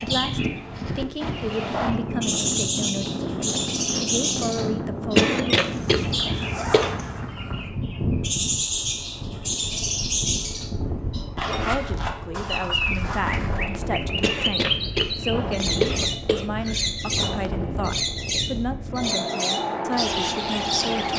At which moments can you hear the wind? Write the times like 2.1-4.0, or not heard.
0.0-21.1.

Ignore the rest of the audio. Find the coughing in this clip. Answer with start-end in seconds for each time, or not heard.
5.2-6.9, 14.2-16.9.